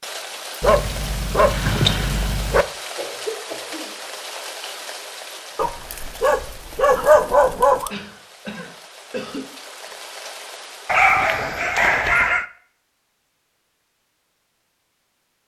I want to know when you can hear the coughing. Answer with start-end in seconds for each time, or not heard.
3.0-3.9, 7.8-9.4.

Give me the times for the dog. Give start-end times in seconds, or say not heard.
0.6-2.6, 5.5-7.9, 10.8-12.4.